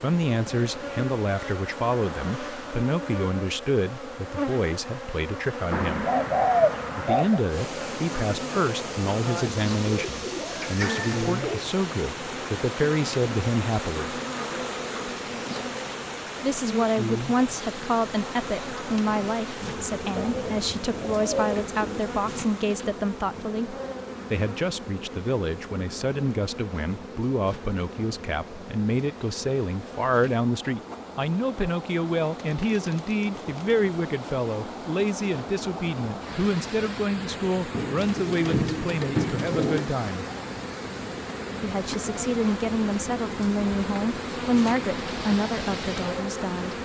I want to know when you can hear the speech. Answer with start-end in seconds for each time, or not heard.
0.0-6.0, 7.0-14.2, 16.4-40.2, 41.6-46.8.